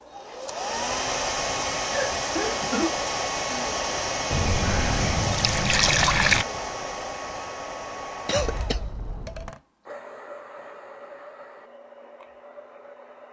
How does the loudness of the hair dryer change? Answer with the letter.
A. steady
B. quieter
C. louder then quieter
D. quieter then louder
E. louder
B.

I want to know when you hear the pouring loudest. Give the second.
6 s.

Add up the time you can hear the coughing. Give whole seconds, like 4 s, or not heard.
2 s.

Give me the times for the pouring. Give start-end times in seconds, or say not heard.
4.3-6.5.